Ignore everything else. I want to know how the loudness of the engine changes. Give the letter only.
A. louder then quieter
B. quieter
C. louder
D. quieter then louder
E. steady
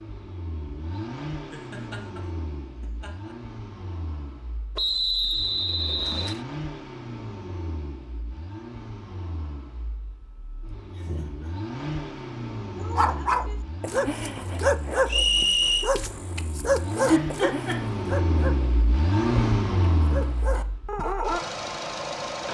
C.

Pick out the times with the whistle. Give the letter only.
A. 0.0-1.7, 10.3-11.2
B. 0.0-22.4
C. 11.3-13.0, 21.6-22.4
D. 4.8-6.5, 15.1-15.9
D.